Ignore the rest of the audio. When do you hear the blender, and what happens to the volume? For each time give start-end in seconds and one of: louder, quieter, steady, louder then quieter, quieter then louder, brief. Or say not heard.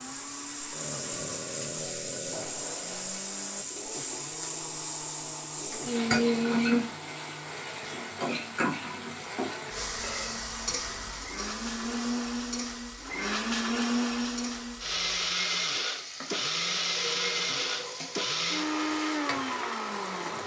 0.0-20.4 louder.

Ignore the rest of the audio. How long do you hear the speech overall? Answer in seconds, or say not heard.
not heard.